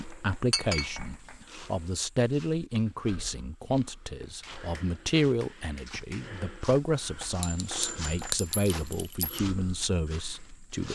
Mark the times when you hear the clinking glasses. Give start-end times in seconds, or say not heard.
0.5-1.1, 7.4-9.4.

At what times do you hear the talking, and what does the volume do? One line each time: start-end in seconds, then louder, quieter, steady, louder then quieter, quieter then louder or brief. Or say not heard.
0.0-10.8 steady.